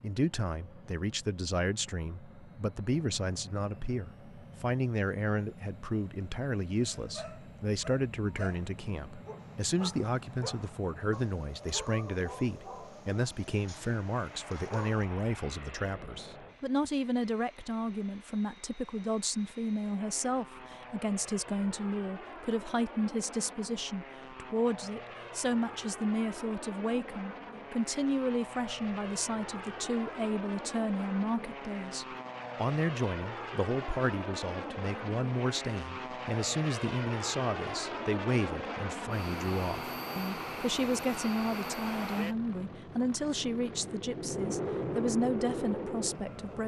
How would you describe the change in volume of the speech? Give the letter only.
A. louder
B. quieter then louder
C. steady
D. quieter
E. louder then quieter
C.